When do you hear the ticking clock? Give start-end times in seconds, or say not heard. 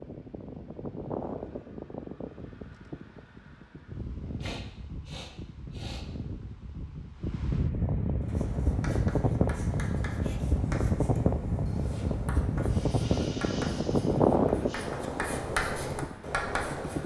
not heard.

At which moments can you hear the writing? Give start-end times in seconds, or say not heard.
8.2-17.0.